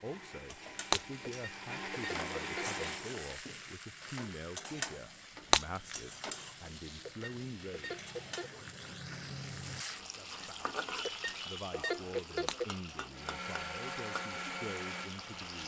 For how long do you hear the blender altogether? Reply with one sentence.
You can hear the blender for 6 seconds altogether.